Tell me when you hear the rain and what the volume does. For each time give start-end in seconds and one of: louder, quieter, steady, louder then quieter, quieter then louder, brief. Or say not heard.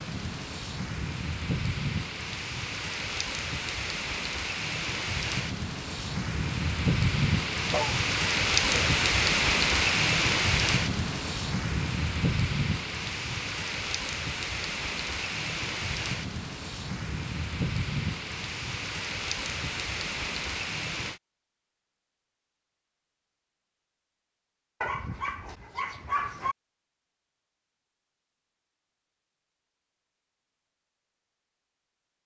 0.0-21.2 louder then quieter.